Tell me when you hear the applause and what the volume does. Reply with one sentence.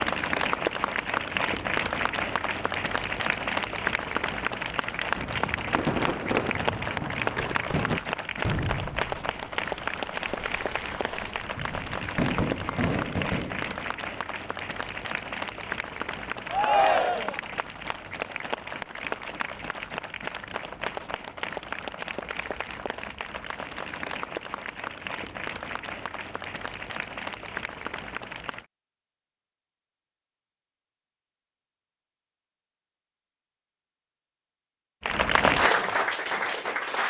You can hear the applause from 0.0 to 28.6 s, getting quieter; and briefly from 35.0 to 37.0 s.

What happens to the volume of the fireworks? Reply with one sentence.
The volume of the fireworks goes down, then up.